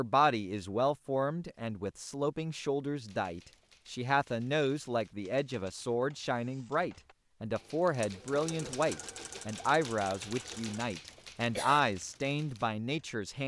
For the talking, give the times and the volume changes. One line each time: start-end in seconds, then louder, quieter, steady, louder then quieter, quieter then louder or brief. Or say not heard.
0.0-13.4 steady.